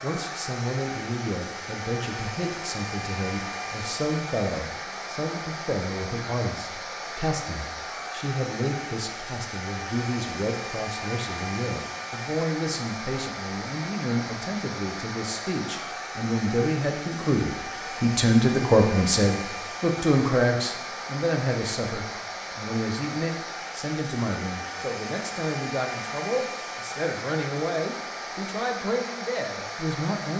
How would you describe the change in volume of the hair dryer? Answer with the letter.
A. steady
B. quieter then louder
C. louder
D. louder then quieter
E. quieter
A.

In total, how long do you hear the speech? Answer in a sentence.
The speech can be heard for 30 seconds in total.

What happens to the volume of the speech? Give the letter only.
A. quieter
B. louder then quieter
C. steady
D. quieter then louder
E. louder
B.